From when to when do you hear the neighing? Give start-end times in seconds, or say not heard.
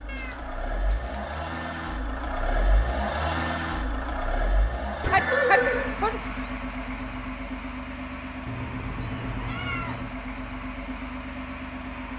5.0-5.9.